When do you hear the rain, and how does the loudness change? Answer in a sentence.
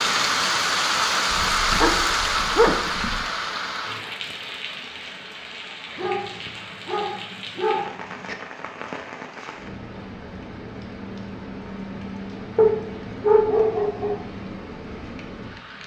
You can hear the rain from 0.0 to 15.8 s, getting quieter.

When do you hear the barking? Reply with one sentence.
The barking can be heard from 1.3 to 3.2 s, from 6.0 to 8.3 s and from 12.6 to 14.2 s.